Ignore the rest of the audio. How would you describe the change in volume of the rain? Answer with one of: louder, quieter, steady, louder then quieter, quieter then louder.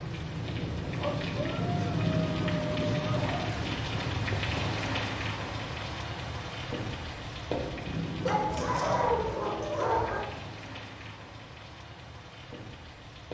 quieter.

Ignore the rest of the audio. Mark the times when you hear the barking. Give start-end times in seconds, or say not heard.
0.9-3.4, 8.2-10.2.